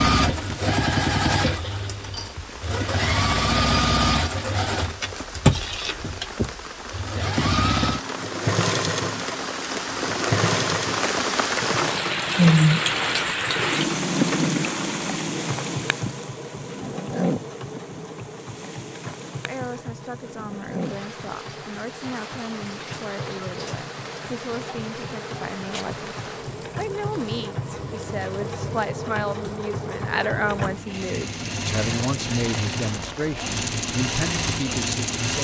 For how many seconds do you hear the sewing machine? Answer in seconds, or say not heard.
35 s.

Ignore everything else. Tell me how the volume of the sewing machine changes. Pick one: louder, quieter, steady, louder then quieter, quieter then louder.
quieter then louder.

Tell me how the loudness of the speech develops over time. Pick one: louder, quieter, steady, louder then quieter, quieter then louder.
louder.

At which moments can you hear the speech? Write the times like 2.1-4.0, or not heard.
19.4-35.3.